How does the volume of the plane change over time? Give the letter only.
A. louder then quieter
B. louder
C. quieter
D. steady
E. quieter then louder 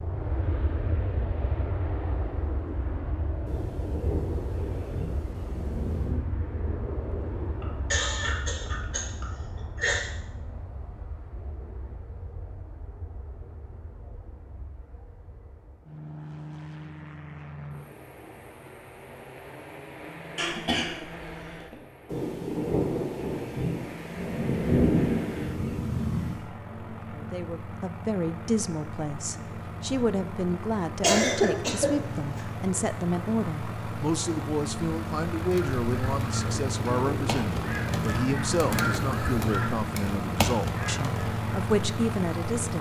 E.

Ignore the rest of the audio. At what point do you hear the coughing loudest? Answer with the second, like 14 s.
31 s.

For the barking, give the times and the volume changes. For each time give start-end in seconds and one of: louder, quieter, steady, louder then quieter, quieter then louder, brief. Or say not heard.
not heard.